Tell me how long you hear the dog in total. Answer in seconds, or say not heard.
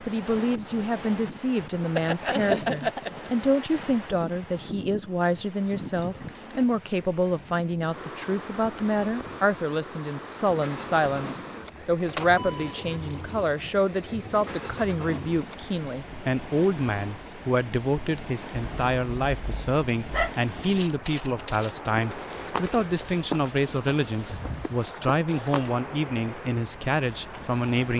3 s.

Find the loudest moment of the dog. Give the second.
3 s.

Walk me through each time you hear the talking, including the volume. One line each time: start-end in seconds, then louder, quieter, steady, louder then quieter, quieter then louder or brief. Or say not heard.
0.1-27.9 steady.